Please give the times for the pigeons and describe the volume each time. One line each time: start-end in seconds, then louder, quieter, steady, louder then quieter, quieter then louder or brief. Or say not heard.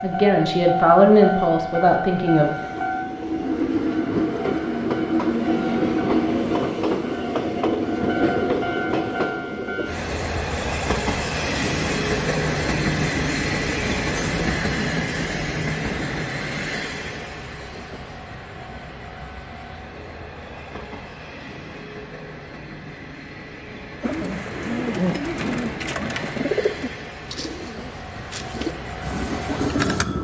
24.0-30.1 quieter then louder.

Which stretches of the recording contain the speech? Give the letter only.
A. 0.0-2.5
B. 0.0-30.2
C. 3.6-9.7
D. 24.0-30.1
A.